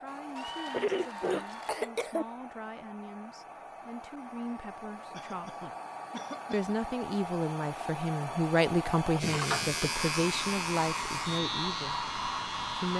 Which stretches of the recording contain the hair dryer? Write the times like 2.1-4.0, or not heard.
0.0-12.9.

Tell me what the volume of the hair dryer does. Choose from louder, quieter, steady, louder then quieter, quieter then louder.
louder.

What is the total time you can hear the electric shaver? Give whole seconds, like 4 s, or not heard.
4 s.